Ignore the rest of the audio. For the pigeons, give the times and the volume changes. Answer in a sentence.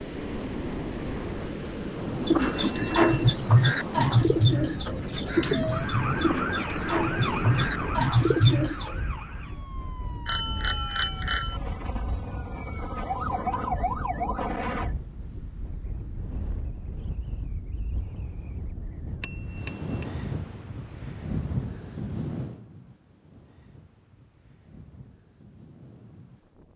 You can hear the pigeons from 2.1 to 8.9 s, getting quieter then louder.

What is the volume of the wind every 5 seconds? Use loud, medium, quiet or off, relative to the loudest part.
loud, loud, medium, medium, loud, quiet.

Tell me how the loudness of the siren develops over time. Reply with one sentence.
The volume of the siren goes down, then up.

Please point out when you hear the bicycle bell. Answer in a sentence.
The bicycle bell can be heard from 2.4 to 3.2 s, from 10.2 to 11.6 s and from 19.2 to 20.1 s.